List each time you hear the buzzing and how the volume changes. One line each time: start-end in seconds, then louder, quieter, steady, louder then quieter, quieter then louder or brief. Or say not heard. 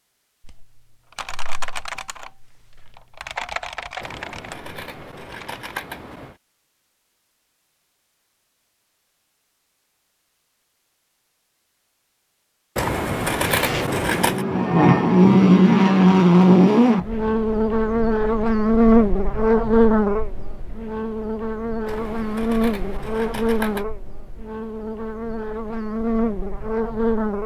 13.5-27.4 quieter.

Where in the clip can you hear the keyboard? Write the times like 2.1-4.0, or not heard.
0.5-5.7.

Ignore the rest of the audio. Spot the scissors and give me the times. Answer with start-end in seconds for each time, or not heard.
4.0-6.3, 12.8-14.4, 21.9-23.9.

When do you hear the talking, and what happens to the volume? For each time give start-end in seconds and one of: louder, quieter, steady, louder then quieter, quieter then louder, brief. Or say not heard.
not heard.